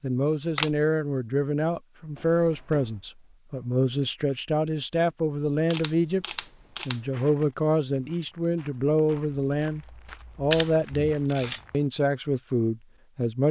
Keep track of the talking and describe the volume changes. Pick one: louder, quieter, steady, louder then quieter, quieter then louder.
steady.